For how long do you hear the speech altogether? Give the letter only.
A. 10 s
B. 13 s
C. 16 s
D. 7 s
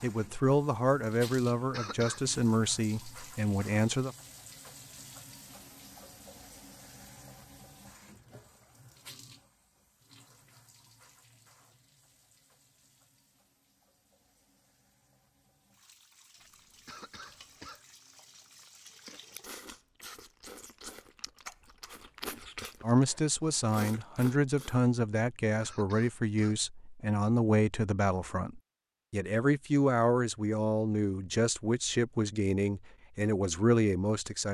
C.